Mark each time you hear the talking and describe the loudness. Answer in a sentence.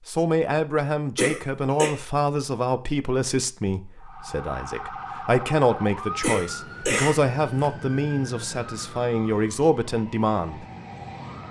The talking can be heard from 0.1 to 10.7 s, at a steady volume.